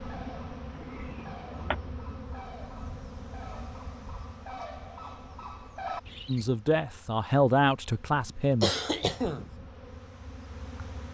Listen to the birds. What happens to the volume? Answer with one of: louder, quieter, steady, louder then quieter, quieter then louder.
louder.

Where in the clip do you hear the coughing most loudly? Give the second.
9 s.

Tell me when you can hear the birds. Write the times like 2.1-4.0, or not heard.
0.0-6.5.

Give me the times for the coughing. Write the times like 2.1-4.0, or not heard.
0.8-1.8, 8.1-9.5.